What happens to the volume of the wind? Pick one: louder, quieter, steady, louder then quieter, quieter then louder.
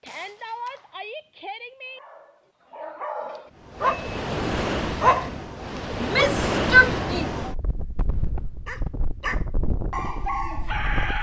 quieter.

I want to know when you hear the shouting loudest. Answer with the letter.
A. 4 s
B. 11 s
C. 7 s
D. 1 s
C.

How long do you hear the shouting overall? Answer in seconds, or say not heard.
3 s.